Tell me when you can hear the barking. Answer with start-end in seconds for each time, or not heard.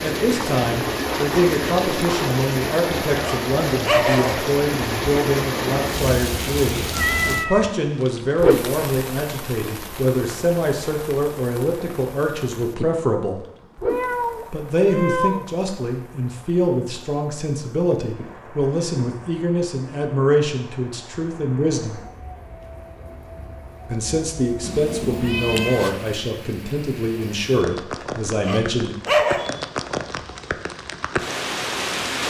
3.2-4.3, 28.4-29.5.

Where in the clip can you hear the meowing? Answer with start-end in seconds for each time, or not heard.
6.9-7.7, 13.8-15.4, 24.6-26.1.